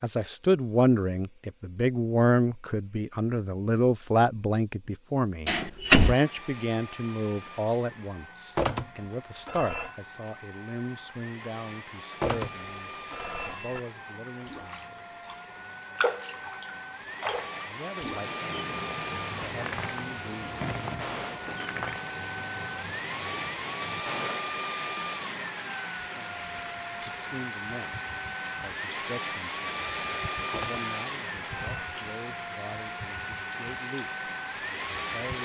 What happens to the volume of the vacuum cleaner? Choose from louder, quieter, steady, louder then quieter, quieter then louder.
louder.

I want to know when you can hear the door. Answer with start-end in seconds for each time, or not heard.
5.5-6.2, 19.4-22.0.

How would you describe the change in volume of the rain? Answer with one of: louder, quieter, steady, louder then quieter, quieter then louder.
quieter.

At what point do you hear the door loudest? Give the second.
6 s.